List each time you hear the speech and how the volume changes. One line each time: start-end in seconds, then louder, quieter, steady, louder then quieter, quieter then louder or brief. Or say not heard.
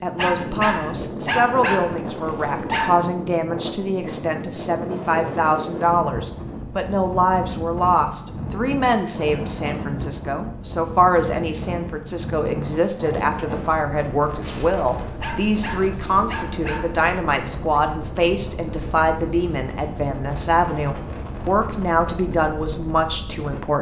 0.0-23.7 steady.